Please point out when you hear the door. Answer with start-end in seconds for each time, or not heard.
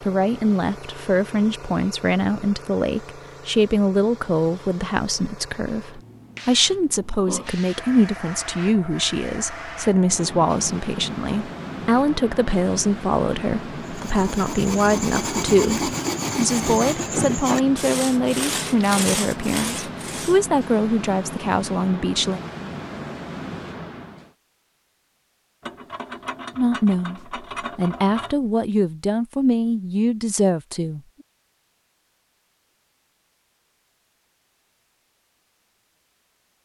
not heard.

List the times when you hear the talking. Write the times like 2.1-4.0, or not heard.
0.0-22.4, 26.6-31.0.